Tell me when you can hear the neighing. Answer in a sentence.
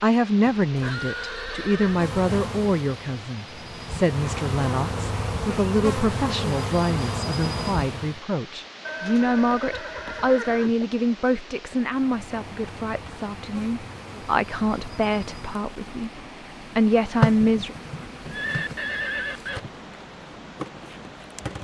You can hear the neighing from 0.6 to 2.0 s, from 8.8 to 10.8 s and from 18.3 to 19.6 s.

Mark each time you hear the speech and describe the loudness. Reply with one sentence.
You can hear the speech from 0.0 to 17.8 s, at a steady volume.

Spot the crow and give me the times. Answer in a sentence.
You can't hear the crow here.